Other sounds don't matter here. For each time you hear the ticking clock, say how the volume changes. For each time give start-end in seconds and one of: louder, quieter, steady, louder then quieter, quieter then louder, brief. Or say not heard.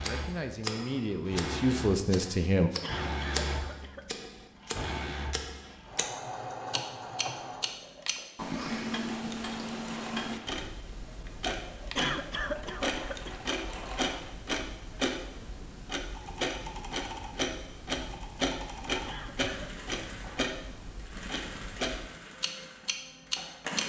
0.0-23.8 steady.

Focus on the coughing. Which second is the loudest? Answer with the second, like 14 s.
12 s.